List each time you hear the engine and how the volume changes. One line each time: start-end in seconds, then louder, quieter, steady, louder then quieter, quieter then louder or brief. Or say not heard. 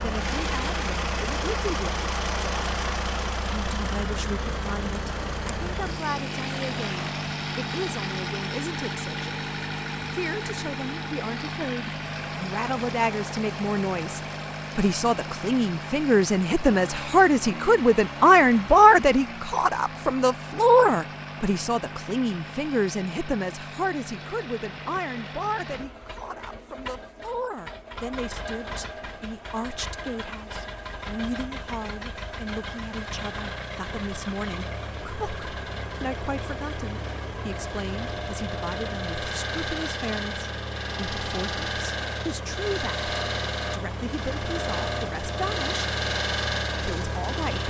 0.0-47.6 quieter then louder.